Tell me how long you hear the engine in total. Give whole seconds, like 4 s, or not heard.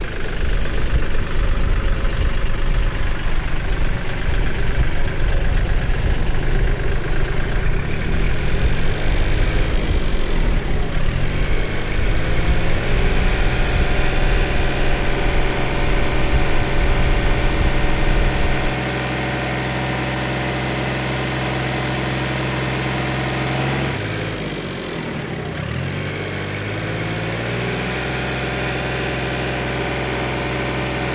31 s.